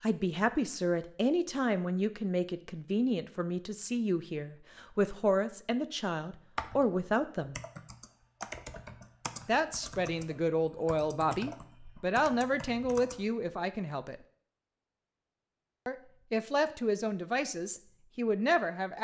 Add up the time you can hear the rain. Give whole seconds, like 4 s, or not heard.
not heard.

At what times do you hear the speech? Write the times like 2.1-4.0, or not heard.
0.0-7.5, 9.4-14.2, 15.8-18.9.